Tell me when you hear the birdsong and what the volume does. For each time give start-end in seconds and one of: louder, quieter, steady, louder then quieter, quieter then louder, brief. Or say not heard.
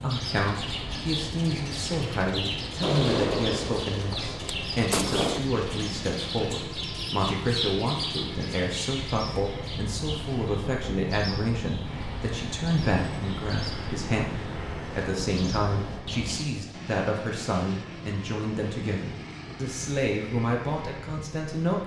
0.0-16.4 steady.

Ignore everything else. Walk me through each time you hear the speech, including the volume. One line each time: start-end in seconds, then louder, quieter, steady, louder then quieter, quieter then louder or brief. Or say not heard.
0.0-21.8 steady.